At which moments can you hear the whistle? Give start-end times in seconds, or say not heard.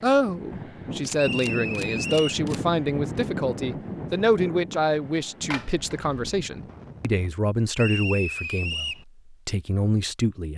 1.1-2.5, 7.8-9.1.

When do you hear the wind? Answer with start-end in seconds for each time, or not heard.
0.0-7.3.